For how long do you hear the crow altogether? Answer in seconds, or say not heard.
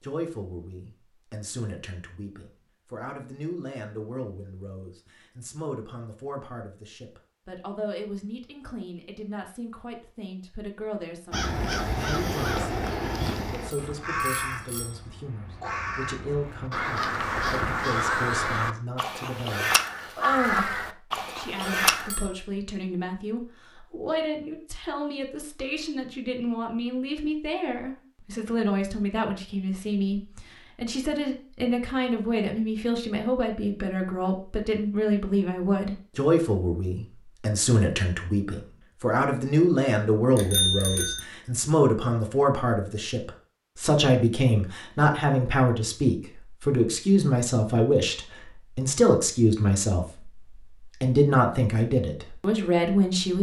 11 s.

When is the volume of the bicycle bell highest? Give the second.
41 s.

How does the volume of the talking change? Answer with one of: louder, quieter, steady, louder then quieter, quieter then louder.
louder.